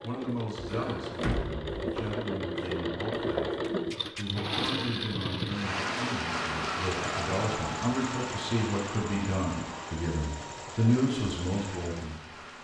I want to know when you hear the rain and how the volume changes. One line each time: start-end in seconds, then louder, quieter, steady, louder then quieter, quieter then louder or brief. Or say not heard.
5.5-12.5 quieter.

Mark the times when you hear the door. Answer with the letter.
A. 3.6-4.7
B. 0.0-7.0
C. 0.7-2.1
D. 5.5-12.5
C.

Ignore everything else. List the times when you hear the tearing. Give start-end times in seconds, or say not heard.
3.6-4.7.